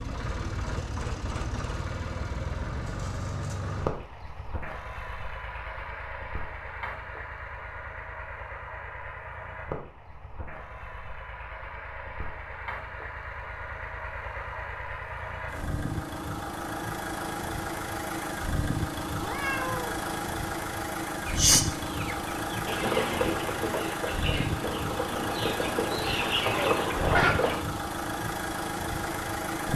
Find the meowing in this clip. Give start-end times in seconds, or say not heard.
19.2-20.0.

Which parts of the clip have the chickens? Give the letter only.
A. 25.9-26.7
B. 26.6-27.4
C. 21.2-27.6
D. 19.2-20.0
C.